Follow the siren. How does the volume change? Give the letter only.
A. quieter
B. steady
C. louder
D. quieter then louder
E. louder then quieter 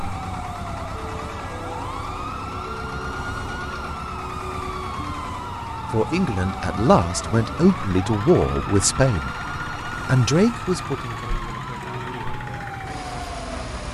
B.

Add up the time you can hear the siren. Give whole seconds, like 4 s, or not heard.
14 s.